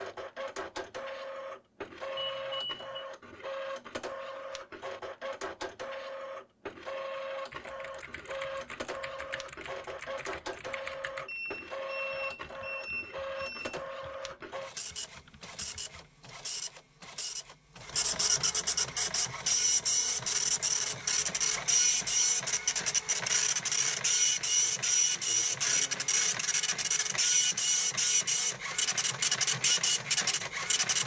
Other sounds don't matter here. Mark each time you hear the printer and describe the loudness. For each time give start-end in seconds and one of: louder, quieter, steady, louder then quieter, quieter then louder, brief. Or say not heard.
0.0-31.0 louder.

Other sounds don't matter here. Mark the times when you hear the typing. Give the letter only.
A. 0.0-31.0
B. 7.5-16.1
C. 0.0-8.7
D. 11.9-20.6
B.